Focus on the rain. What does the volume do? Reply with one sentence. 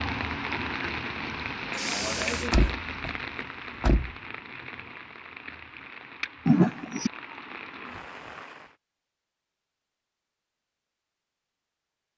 The loudness of the rain goes down.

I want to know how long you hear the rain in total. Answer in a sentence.
The rain can be heard for 9 seconds in total.